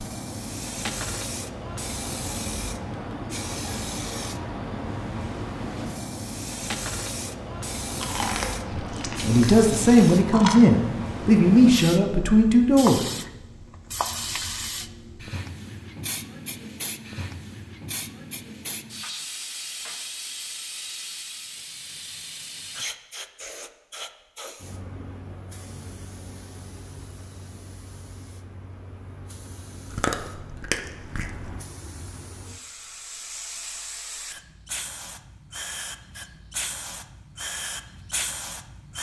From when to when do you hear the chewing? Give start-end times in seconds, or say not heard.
8.0-10.7, 29.9-31.5.